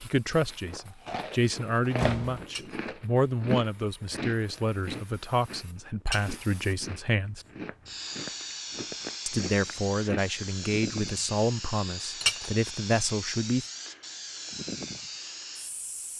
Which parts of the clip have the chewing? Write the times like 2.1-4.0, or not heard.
0.5-10.5.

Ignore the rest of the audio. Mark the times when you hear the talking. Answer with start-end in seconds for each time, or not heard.
0.0-7.5, 9.2-13.7.